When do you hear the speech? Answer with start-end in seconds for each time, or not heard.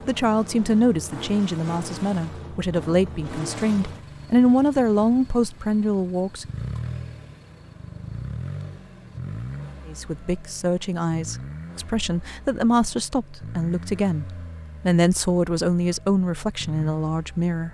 0.1-6.5, 9.8-17.6.